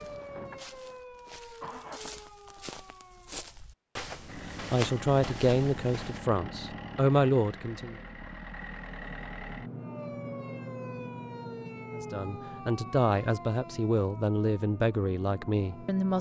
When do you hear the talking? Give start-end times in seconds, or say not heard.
4.7-8.0, 11.9-16.1.